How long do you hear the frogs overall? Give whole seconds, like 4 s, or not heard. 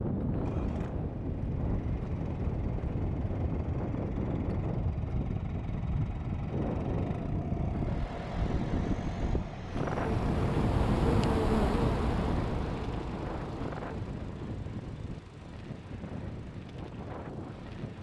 not heard.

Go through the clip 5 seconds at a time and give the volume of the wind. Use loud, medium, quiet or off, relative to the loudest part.
loud, loud, loud, medium.